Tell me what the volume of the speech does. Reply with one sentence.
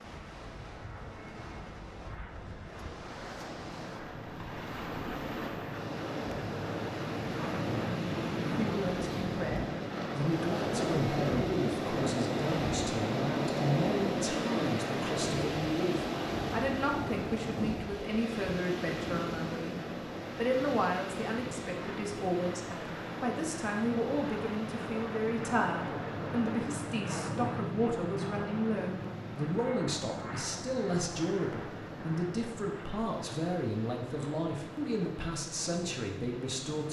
The loudness of the speech stays about the same.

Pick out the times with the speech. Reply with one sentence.
You can hear the speech from 8.6 to 36.8 s.